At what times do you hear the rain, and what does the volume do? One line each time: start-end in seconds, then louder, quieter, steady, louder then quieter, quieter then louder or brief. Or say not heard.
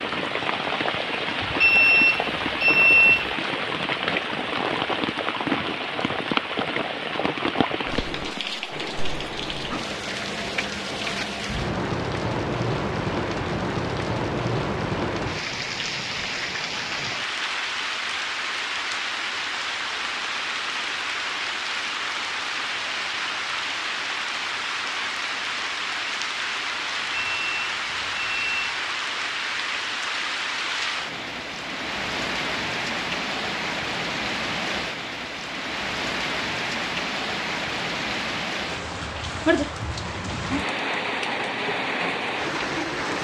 0.0-43.1 steady.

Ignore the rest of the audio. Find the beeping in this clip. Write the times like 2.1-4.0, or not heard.
1.6-3.2, 27.1-28.6.